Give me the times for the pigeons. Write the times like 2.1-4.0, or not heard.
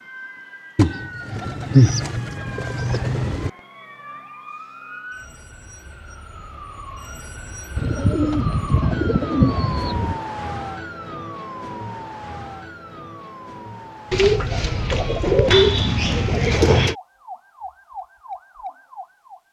0.8-3.5, 7.8-10.2, 14.1-16.9.